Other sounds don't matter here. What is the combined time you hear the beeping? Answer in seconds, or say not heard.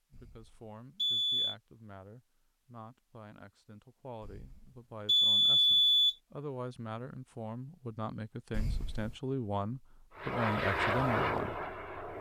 4 s.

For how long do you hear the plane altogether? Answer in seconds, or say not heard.
2 s.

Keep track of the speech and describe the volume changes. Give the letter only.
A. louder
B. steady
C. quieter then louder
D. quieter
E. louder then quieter
A.